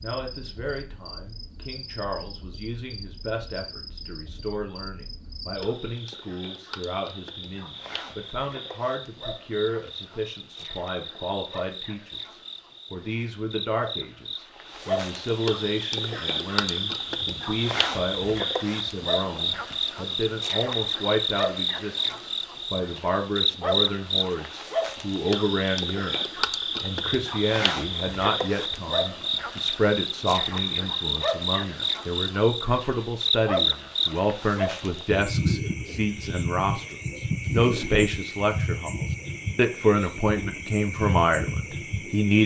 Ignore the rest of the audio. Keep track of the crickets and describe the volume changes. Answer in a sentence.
The loudness of the crickets goes up.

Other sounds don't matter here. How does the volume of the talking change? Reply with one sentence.
The volume of the talking goes up.